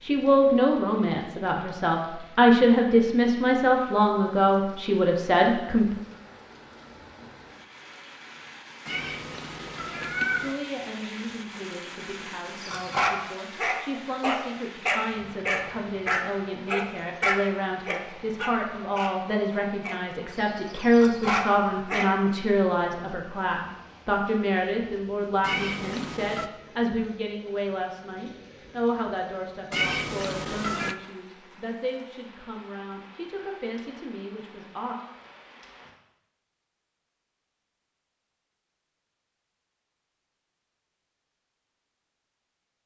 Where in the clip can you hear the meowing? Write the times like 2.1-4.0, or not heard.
8.8-10.6, 25.4-26.5, 29.7-30.9.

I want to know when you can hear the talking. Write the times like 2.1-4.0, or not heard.
0.0-6.0, 10.4-35.0.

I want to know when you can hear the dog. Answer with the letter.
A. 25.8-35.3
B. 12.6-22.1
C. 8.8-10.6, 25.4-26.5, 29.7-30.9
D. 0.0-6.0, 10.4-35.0
B.